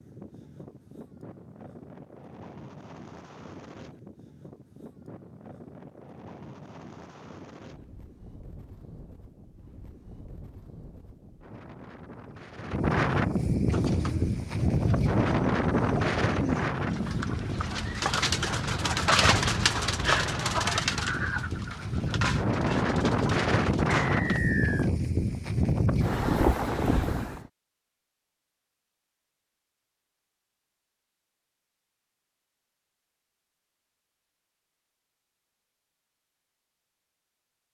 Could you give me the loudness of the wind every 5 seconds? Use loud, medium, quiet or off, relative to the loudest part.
quiet, quiet, loud, loud, loud, loud, off, off.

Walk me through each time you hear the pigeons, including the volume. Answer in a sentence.
The pigeons can be heard from 13.7 to 24.4 s, getting louder then quieter.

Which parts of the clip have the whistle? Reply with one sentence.
The whistle can be heard from 24.1 to 24.9 s.